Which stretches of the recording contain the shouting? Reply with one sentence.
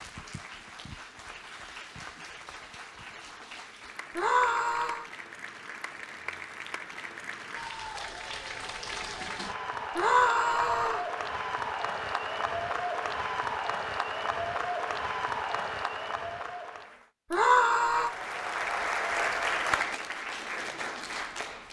You can hear the shouting from 4.2 to 5.0 s, from 9.9 to 11.0 s and from 17.3 to 18.1 s.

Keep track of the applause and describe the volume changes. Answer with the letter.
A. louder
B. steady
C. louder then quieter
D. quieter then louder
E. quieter
A.